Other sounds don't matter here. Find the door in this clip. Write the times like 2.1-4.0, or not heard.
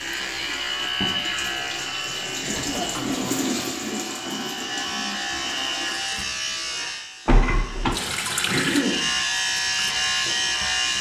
2.5-3.2, 7.2-8.0.